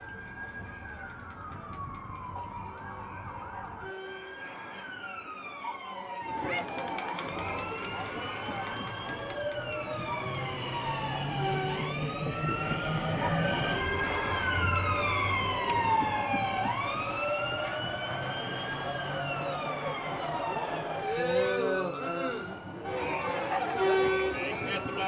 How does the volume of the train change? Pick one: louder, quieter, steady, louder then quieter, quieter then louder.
louder then quieter.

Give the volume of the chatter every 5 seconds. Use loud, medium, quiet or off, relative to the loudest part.
quiet, medium, medium, medium, loud.